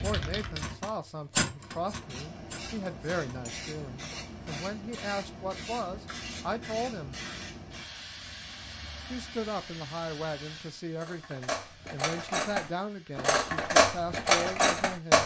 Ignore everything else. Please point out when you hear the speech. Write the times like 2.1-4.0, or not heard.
0.0-7.2, 9.1-15.2.